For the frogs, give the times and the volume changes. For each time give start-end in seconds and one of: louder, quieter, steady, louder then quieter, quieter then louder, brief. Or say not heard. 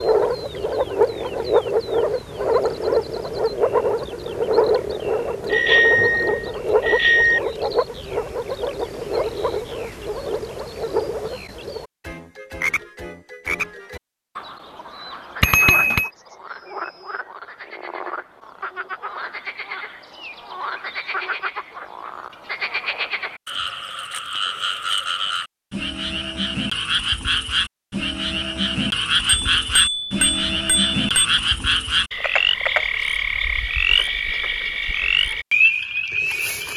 0.0-36.7 quieter then louder.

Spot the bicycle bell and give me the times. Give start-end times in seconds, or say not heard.
5.5-7.4, 15.4-16.1, 29.2-31.3.